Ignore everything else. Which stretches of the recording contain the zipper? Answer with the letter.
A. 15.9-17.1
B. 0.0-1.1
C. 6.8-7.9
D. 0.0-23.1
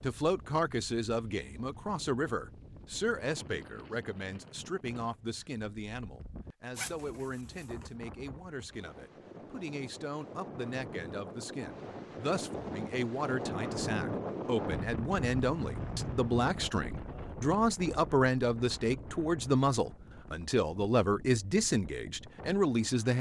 C.